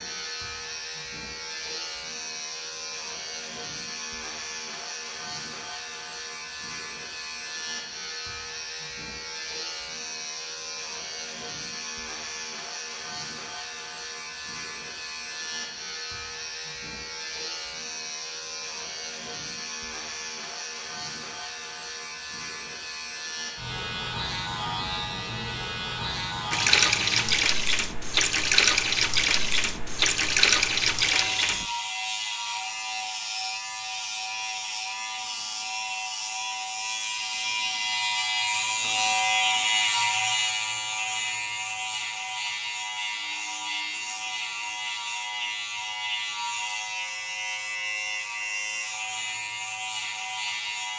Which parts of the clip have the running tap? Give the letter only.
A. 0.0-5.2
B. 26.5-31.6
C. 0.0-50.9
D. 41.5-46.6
B.